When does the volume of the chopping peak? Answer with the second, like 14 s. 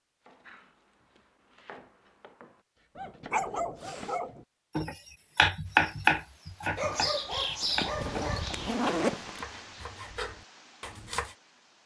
6 s.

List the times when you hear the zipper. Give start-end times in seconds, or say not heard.
7.6-9.4.